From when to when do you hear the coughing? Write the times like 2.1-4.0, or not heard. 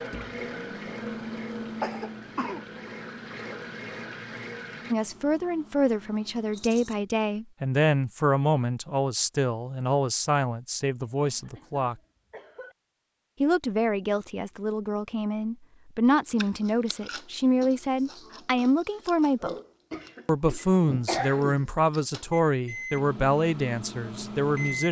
1.8-2.6, 11.1-12.8, 19.9-21.6.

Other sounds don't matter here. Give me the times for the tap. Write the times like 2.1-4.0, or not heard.
0.0-5.0.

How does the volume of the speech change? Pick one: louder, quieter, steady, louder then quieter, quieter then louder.
steady.